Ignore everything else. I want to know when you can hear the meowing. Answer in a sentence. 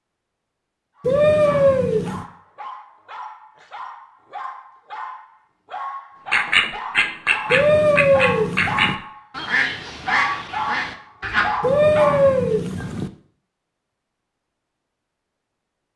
You can hear the meowing from 1.0 to 2.2 s, from 7.5 to 8.9 s and from 11.6 to 13.1 s.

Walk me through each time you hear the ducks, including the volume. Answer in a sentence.
The ducks can be heard from 6.3 to 11.7 s, getting quieter.